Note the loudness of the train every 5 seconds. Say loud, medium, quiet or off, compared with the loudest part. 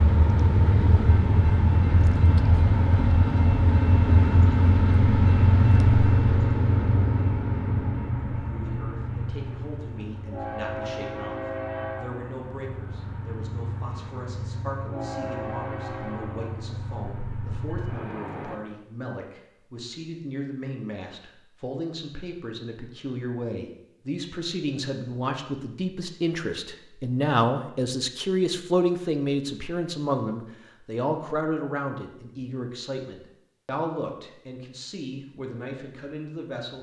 loud, loud, medium, medium, off, off, off, off.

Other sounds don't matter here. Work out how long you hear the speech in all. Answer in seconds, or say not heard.
28 s.